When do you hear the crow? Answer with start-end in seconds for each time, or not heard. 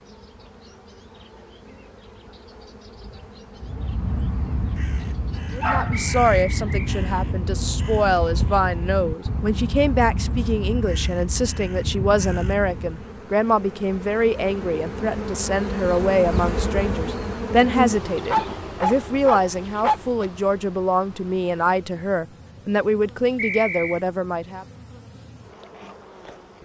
3.5-13.1.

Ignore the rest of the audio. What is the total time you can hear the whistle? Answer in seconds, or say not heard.
2 s.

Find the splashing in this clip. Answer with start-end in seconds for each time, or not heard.
not heard.